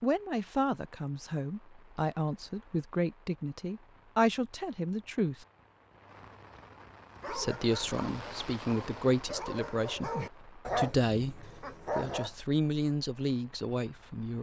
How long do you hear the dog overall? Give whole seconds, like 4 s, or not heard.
5 s.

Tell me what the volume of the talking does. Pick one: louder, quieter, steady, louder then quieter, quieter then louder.
steady.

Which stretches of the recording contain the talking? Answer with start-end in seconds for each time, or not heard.
0.0-5.5, 7.2-14.3.